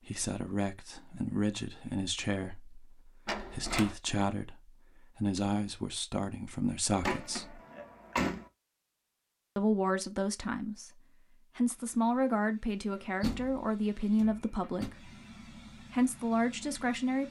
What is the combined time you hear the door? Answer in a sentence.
The door can be heard for 4 seconds in total.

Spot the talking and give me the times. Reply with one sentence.
The talking can be heard from 0.1 to 7.6 s, from 9.6 to 15.1 s and from 15.8 to 17.2 s.